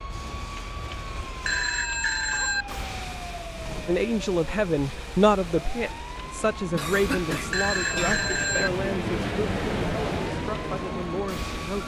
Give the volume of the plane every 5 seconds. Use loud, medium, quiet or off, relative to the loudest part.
quiet, loud, loud.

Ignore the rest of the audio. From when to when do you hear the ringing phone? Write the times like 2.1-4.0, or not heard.
1.4-2.6, 7.5-8.7.